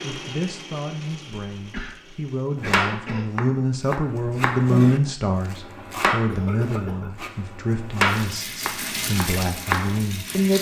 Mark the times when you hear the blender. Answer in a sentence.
You can hear the blender from 0.0 to 2.8 s.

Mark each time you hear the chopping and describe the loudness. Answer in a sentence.
You can hear the chopping from 2.5 to 10.0 s, getting louder then quieter.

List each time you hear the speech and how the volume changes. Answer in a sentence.
The speech can be heard from 0.0 to 10.5 s, getting louder then quieter.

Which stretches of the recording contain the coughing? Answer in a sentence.
The coughing can be heard from 1.7 to 3.4 s and from 6.3 to 7.2 s.